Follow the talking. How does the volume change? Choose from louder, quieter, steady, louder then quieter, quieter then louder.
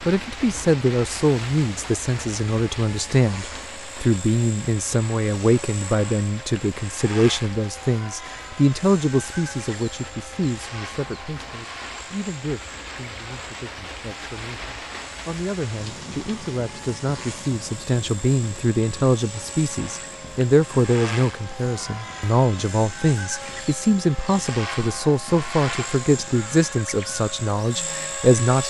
quieter then louder.